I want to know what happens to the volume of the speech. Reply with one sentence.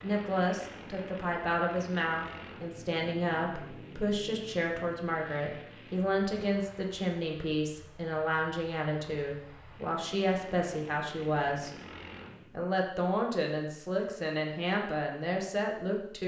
The volume of the speech stays about the same.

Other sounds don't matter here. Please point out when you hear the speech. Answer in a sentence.
You can hear the speech from 0.0 to 11.7 s and from 12.5 to 16.2 s.